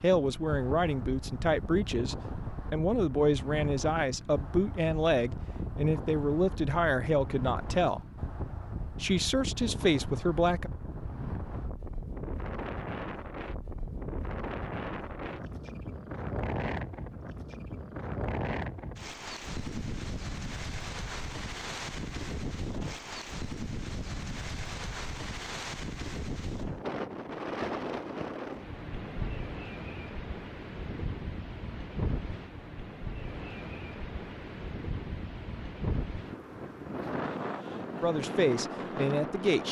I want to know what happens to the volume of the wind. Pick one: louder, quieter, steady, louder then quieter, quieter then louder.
steady.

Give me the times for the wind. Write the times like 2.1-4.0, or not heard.
0.0-39.6.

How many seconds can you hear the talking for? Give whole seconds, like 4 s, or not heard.
11 s.